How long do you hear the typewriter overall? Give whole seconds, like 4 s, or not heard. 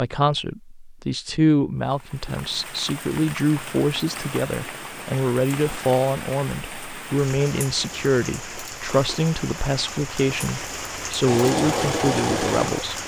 not heard.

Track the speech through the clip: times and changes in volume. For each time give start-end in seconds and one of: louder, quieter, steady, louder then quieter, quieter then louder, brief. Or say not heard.
0.0-13.0 steady.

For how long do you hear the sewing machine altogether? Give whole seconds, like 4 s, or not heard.
2 s.